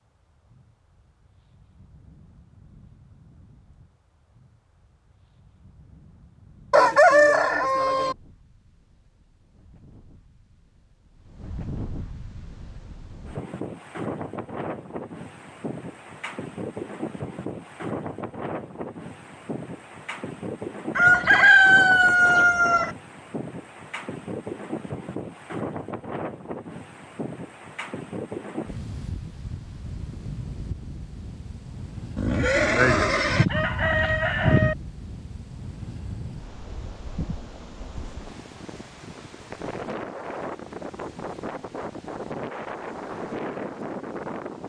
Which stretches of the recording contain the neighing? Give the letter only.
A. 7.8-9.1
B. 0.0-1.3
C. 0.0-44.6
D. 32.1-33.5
D.